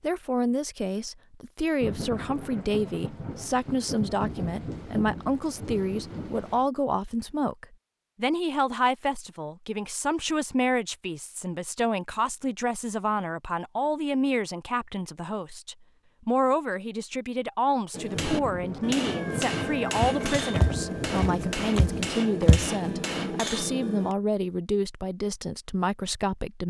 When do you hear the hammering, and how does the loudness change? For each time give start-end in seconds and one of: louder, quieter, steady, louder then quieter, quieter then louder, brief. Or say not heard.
17.9-24.1 steady.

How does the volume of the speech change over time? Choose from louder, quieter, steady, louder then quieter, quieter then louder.
steady.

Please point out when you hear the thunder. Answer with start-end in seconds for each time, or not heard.
1.8-6.7, 18.1-22.1.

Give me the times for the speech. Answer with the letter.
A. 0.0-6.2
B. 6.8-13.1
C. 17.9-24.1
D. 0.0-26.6
D.